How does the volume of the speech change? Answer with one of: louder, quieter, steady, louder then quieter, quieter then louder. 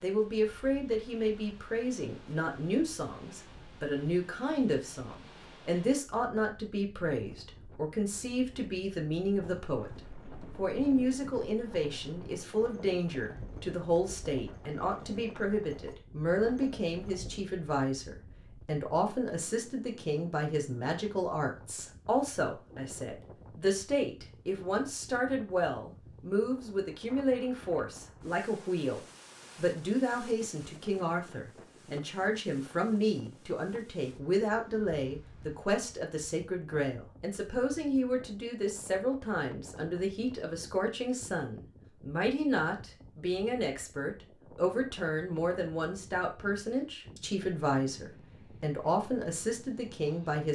steady.